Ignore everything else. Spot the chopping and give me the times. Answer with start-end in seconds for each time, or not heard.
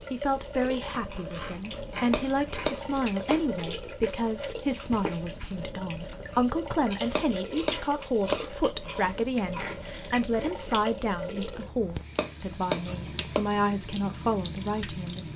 2.1-3.4, 7.2-8.4, 12.2-13.4.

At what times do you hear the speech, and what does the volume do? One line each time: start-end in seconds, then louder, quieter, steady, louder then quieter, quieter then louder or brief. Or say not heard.
0.1-15.3 steady.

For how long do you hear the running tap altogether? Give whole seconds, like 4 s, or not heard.
15 s.